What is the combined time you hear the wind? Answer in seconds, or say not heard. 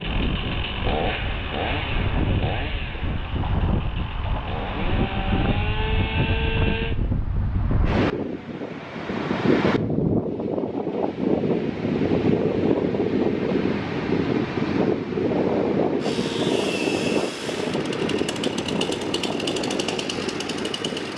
21 s.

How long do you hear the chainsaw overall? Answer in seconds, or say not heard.
12 s.